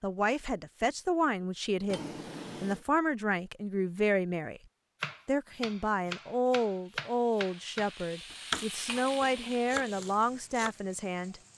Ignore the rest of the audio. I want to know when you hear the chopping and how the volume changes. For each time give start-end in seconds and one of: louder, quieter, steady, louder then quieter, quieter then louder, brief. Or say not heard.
5.0-10.8 louder then quieter.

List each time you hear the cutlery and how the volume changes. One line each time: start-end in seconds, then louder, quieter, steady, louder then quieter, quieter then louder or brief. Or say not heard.
not heard.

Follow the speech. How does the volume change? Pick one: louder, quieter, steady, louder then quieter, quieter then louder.
steady.